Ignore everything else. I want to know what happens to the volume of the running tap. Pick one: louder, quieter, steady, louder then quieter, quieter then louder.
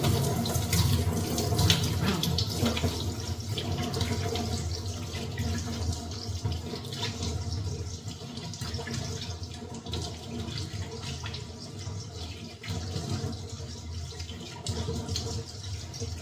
quieter.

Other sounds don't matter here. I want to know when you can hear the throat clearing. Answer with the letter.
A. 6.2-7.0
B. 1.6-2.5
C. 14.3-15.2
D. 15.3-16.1
B.